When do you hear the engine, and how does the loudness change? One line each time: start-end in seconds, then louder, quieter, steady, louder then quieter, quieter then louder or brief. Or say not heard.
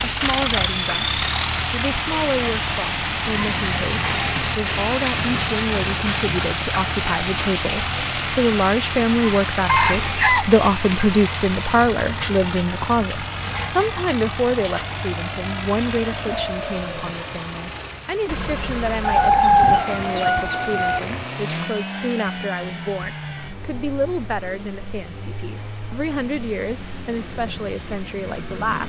0.0-28.8 quieter.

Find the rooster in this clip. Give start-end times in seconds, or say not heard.
9.7-10.5, 19.0-21.0.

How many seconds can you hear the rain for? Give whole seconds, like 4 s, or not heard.
21 s.